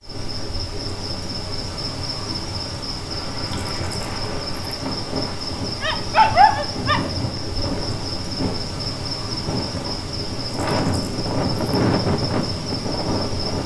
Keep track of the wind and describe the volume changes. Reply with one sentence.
The loudness of the wind goes up.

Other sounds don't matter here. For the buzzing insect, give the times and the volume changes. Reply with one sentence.
You can hear the buzzing insect from 0.0 to 13.6 s, at a steady volume.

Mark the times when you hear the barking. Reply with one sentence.
The barking can be heard from 5.8 to 7.4 s.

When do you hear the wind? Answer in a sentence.
The wind can be heard from 3.1 to 13.6 s.